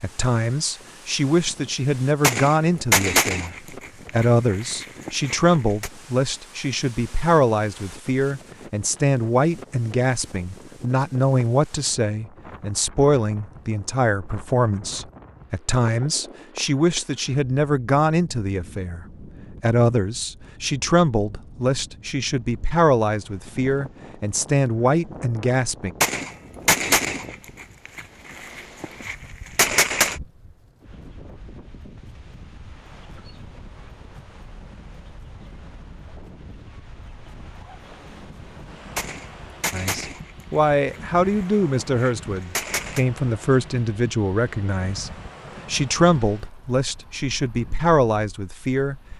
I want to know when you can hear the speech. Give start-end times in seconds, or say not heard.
0.0-25.9, 39.7-49.0.